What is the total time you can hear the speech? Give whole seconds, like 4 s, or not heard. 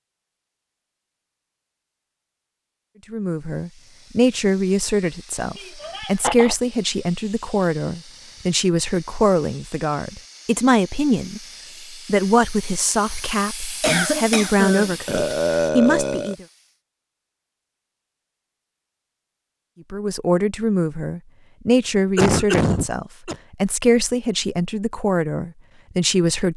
20 s.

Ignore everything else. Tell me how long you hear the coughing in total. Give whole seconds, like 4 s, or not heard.
3 s.